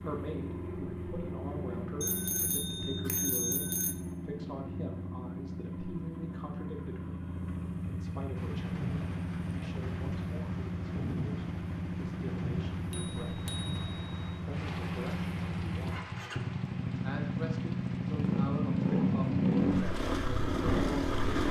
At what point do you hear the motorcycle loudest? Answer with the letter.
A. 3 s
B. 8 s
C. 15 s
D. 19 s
D.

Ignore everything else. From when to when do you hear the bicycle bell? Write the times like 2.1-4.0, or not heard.
2.0-4.0, 12.9-14.4.